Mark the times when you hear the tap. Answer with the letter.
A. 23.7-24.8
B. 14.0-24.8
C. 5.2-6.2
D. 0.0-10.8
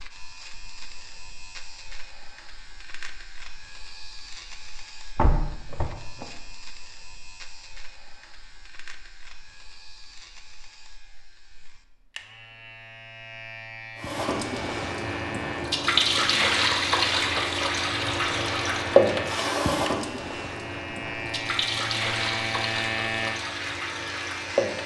B.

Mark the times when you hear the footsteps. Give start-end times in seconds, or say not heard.
not heard.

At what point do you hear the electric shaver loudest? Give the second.
23 s.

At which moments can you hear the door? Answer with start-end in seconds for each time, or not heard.
5.2-6.2.